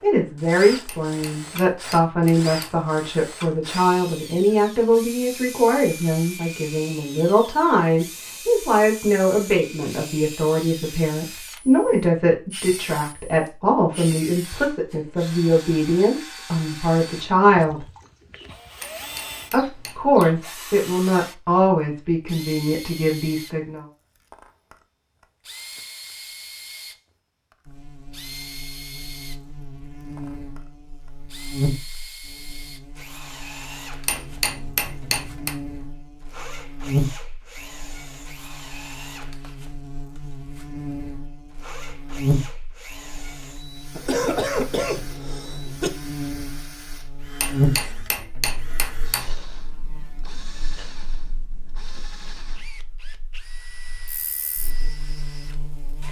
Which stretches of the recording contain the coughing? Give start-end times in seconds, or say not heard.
44.0-45.9.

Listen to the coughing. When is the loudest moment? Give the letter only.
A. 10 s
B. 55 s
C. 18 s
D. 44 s
D.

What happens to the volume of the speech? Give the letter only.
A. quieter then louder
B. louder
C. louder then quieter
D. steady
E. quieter
D.